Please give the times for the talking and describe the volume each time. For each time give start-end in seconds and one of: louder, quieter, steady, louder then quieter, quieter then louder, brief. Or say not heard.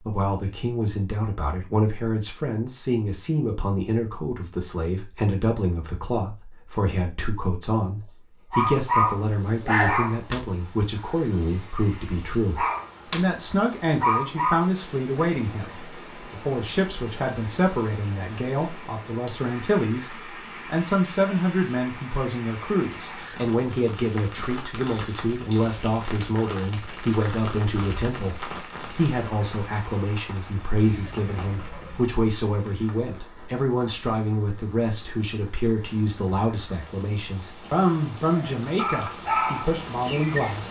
0.1-40.6 steady.